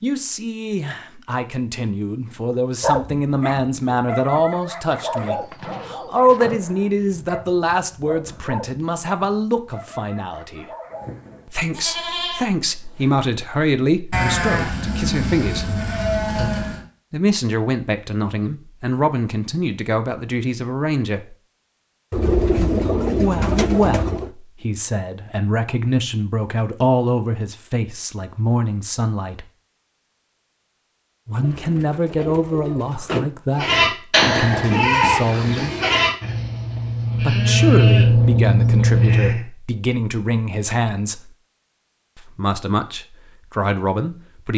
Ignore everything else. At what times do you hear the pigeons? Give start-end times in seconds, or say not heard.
5.2-6.5, 22.1-24.3, 31.4-33.3.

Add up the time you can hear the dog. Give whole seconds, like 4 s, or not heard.
8 s.